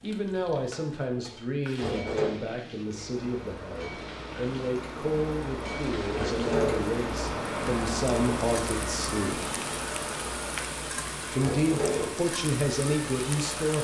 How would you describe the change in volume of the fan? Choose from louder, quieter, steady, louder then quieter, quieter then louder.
louder then quieter.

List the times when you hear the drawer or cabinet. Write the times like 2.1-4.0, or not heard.
1.8-2.4, 6.1-7.0, 11.4-12.2.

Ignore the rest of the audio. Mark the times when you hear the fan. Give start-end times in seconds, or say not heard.
2.7-13.7.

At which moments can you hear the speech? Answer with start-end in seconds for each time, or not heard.
0.0-9.4, 11.3-13.7.